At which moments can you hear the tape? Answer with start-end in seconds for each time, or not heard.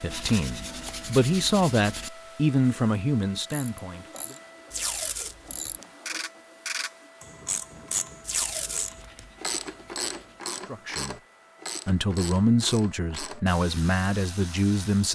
4.7-5.8, 8.2-9.3.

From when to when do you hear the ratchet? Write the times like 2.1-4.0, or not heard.
3.5-15.0.